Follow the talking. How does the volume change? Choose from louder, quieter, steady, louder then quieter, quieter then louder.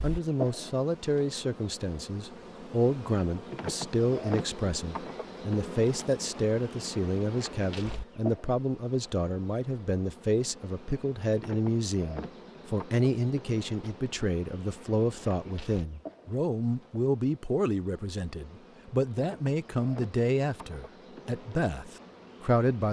steady.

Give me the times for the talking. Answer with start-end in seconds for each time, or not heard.
0.0-22.8.